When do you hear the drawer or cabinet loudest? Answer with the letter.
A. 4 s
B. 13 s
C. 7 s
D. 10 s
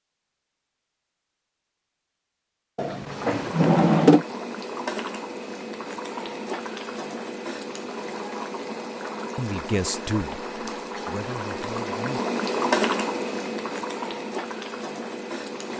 A.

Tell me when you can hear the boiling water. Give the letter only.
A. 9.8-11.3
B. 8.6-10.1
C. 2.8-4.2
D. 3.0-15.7
D.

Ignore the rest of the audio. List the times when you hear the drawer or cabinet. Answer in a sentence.
You can hear the drawer or cabinet from 2.8 to 4.2 s.